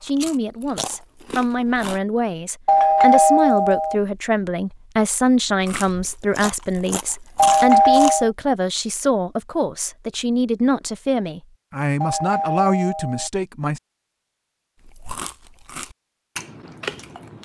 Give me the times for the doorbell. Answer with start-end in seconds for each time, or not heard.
2.6-4.0, 7.3-8.3, 12.0-13.3.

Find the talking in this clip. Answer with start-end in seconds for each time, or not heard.
0.0-13.8.